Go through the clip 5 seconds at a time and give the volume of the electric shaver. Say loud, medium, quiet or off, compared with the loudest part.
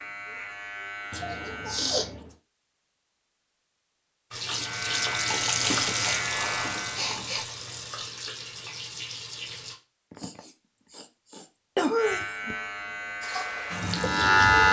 quiet, medium, loud.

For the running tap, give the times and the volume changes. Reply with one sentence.
The running tap can be heard from 4.3 to 9.8 s, getting quieter; and briefly from 13.2 to 14.6 s.